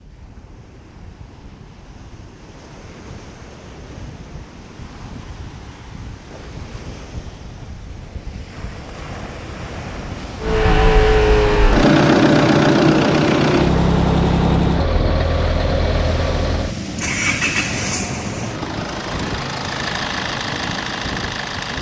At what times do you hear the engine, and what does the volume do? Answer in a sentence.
You can hear the engine from 10.4 to 21.7 s, getting quieter.